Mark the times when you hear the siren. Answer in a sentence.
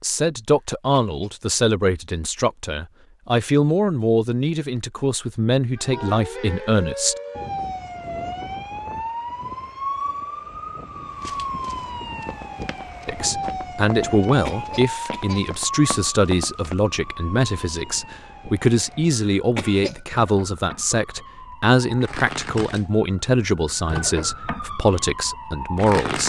You can hear the siren from 5.8 to 26.2 s.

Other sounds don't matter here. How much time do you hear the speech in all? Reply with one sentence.
You can hear the speech for 20 seconds altogether.